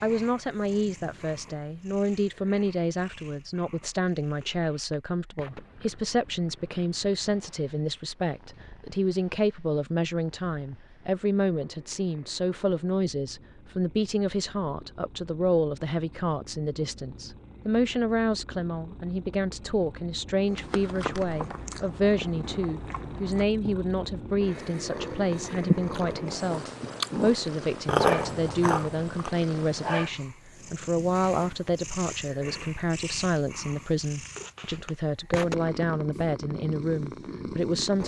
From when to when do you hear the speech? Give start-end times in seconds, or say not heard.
0.0-38.0.